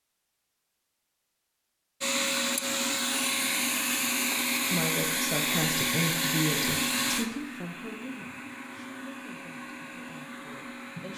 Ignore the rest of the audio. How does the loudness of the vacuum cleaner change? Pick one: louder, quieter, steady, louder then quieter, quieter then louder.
quieter.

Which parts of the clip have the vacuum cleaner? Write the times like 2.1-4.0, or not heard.
2.0-11.1.